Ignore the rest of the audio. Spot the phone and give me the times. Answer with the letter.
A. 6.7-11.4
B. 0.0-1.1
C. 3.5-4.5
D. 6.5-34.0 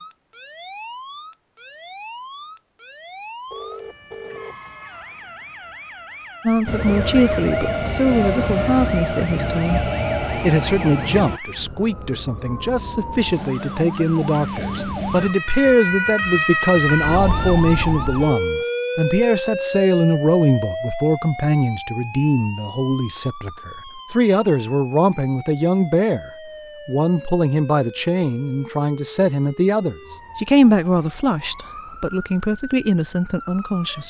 C.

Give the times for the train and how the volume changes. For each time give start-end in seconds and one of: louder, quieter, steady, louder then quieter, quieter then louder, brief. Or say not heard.
6.7-11.4 steady.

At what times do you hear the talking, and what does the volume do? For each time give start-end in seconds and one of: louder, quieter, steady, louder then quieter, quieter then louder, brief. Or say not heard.
6.5-34.0 steady.